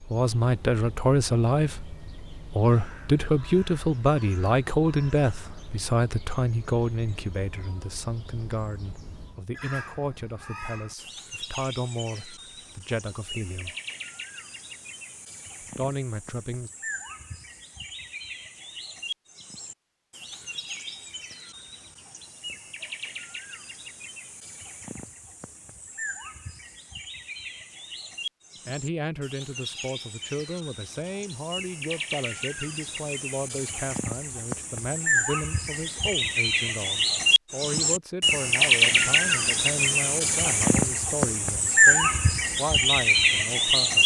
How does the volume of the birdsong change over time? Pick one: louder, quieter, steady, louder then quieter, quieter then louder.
louder.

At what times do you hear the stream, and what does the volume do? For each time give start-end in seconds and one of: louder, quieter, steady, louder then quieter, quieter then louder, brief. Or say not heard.
not heard.